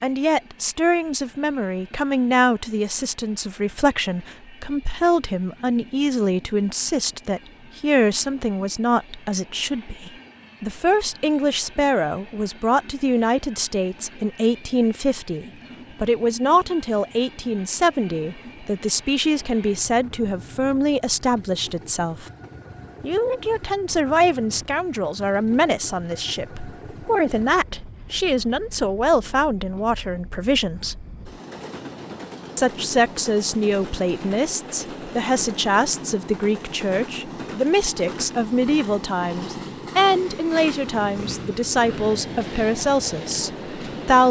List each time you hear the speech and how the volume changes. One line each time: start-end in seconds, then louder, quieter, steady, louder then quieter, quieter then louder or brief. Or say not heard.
0.0-22.2 steady
23.0-31.1 steady
32.5-44.2 steady.